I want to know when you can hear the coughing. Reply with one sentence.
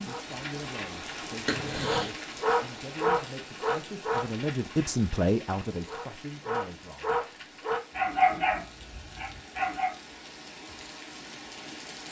You can hear the coughing from 1.4 to 2.1 s.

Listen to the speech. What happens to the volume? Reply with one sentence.
The volume of the speech goes up, then down.